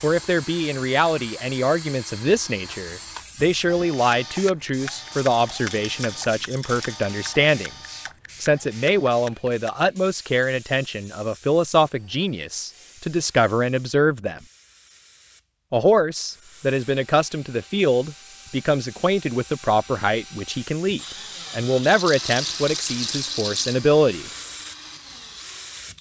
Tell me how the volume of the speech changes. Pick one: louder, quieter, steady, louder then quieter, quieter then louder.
steady.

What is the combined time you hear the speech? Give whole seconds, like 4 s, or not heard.
23 s.